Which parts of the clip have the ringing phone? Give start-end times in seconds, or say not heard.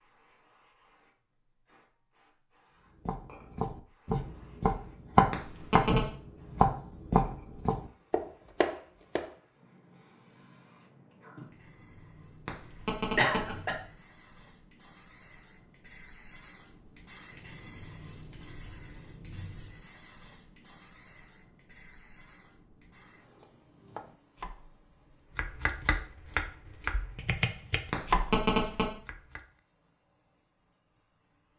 5.3-6.0, 12.4-13.6, 27.9-28.9.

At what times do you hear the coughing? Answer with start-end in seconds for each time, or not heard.
13.2-13.8.